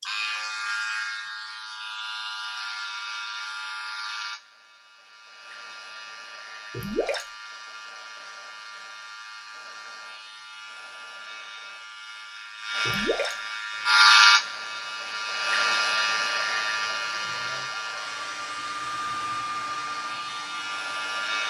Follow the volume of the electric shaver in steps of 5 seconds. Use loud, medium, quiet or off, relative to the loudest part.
medium, quiet, loud, medium, medium.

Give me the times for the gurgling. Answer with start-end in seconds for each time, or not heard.
6.7-7.2, 12.8-13.3.